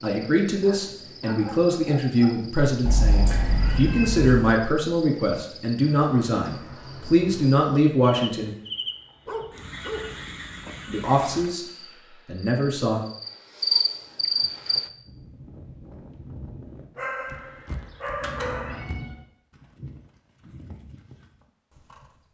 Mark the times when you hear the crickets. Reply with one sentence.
The crickets can be heard from 0.0 to 14.9 s.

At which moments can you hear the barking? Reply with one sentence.
You can hear the barking from 0.6 to 2.4 s, from 9.2 to 10.2 s and from 16.9 to 18.9 s.